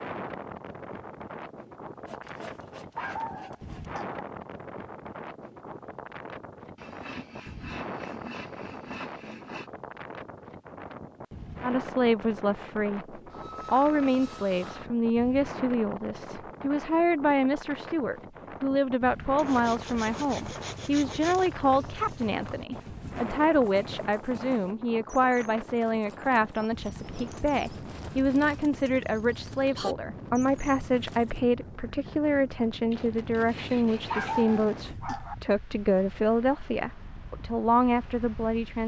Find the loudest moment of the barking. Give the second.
34 s.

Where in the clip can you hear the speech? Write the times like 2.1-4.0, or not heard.
11.6-38.8.